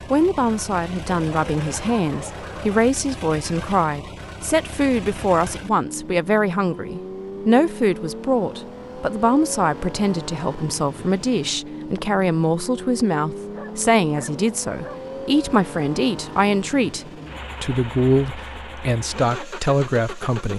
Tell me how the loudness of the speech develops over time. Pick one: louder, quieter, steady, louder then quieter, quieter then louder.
steady.